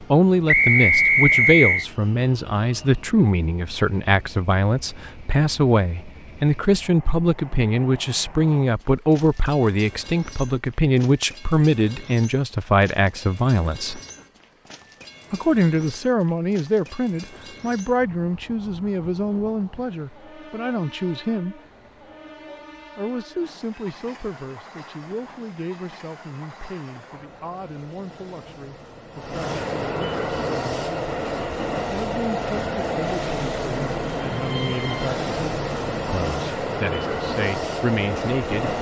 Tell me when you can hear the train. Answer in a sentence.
The train can be heard from 0.0 to 38.7 s.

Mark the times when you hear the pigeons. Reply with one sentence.
The pigeons can't be heard in this clip.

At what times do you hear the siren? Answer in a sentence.
You can't hear the siren here.